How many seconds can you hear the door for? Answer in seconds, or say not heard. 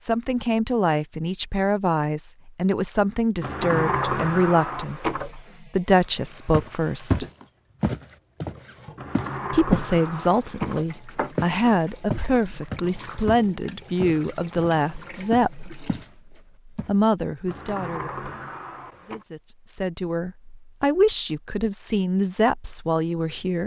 6 s.